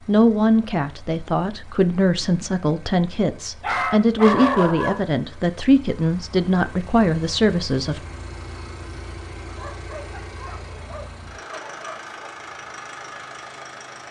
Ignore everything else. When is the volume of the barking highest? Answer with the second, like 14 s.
4 s.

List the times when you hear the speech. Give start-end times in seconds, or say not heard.
0.1-8.0.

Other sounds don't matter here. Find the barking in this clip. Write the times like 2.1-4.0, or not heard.
3.6-5.1, 9.4-12.3.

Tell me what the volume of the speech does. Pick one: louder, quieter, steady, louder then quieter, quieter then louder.
steady.